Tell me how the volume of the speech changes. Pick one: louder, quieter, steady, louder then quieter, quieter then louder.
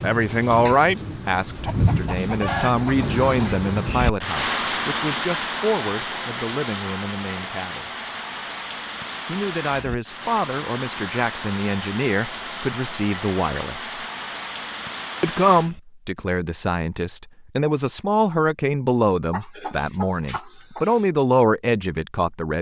quieter then louder.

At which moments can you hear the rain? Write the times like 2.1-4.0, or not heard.
0.0-15.8.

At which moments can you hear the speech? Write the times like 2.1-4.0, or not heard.
0.0-7.9, 9.2-13.9, 15.2-22.5.